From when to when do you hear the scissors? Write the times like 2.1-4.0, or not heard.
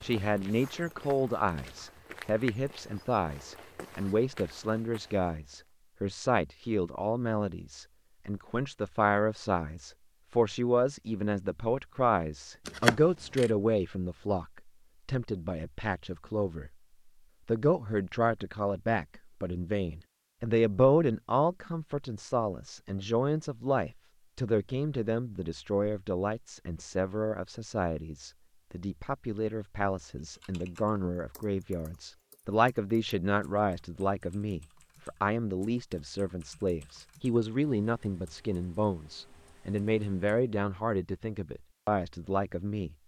12.7-13.5.